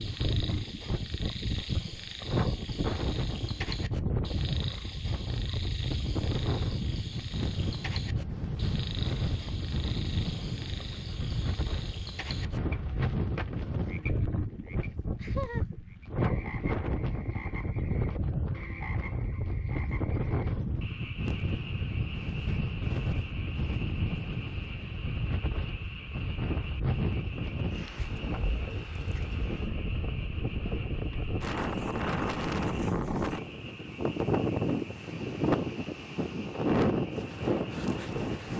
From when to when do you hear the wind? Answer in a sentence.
You can hear the wind from 0.0 to 38.5 s.